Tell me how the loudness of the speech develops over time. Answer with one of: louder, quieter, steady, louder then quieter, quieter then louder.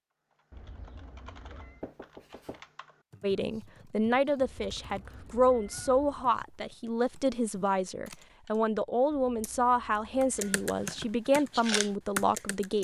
steady.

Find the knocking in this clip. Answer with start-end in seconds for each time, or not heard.
1.8-2.6.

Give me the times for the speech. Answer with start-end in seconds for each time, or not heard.
3.2-12.7.